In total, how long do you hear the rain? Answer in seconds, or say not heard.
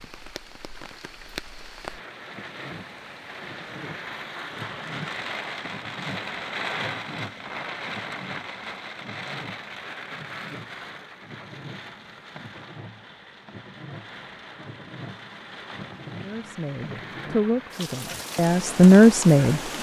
20 s.